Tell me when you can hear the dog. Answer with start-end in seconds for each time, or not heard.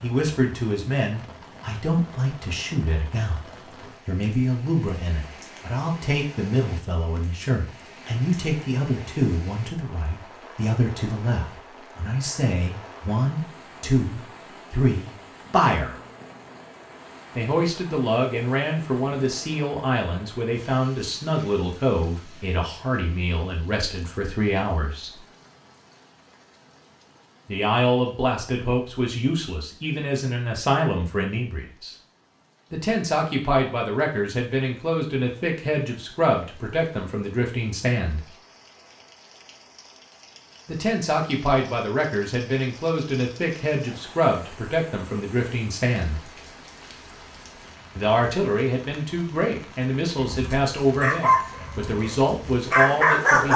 50.2-53.5.